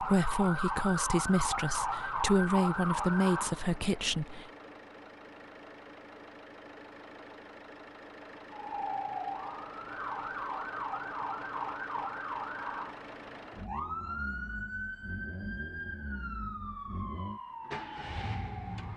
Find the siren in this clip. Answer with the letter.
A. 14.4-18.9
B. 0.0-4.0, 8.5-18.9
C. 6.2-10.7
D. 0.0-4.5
B.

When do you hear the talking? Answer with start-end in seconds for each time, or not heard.
0.0-4.5.